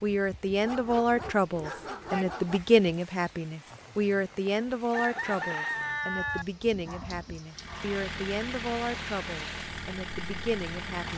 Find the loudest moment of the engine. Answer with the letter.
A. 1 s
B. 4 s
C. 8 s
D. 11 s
D.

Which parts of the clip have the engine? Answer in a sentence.
The engine can be heard from 7.5 to 11.1 s.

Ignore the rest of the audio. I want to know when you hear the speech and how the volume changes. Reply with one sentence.
The speech can be heard from 0.0 to 11.1 s, getting quieter.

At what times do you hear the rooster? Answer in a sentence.
You can hear the rooster from 4.9 to 6.5 s.